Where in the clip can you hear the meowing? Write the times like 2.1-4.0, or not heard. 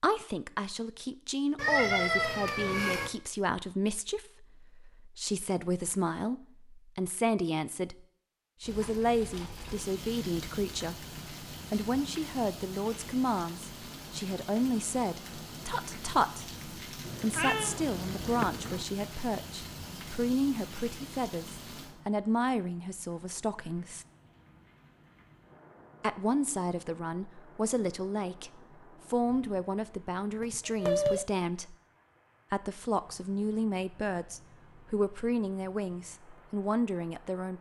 1.6-3.1, 17.0-18.9, 30.4-31.2.